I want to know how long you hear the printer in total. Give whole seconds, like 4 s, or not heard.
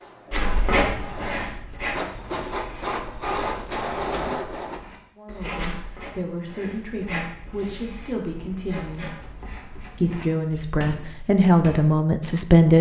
5 s.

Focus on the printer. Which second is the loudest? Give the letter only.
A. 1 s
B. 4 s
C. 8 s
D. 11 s
B.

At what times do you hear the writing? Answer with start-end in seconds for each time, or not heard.
0.3-12.0.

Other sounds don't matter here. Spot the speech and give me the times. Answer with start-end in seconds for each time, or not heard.
5.2-9.1, 9.9-12.7.